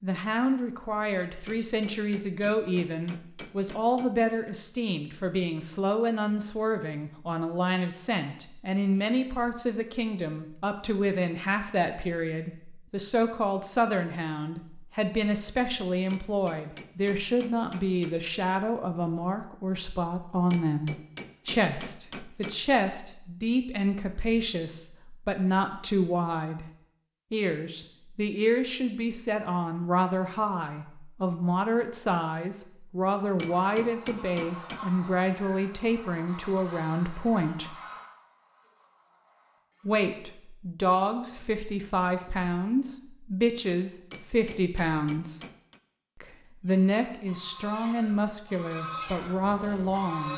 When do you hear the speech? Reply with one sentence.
You can hear the speech from 0.0 to 26.6 s, from 27.3 to 37.8 s, from 39.9 to 45.4 s and from 46.2 to 50.3 s.